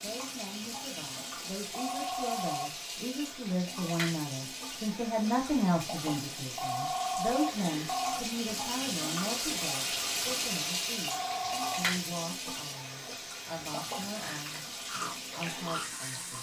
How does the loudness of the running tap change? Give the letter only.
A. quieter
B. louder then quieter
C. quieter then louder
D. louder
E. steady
B.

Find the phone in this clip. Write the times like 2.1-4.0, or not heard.
1.7-2.6, 6.5-8.2, 11.1-11.8.